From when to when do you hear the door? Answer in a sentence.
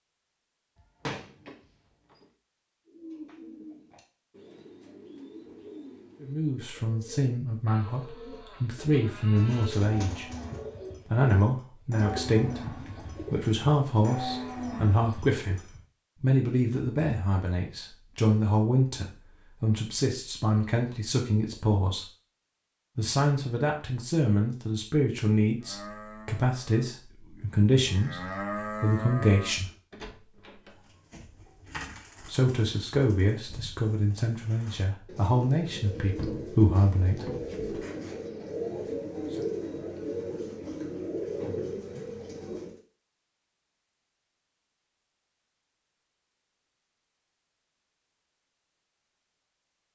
You can hear the door from 0.8 to 2.2 s, from 29.9 to 30.9 s and from 35.6 to 37.9 s.